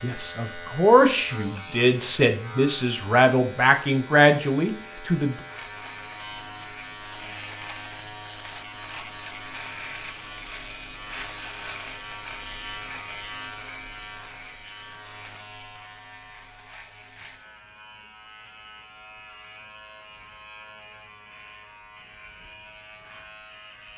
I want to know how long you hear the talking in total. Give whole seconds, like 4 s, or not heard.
5 s.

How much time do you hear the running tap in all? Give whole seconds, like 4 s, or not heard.
not heard.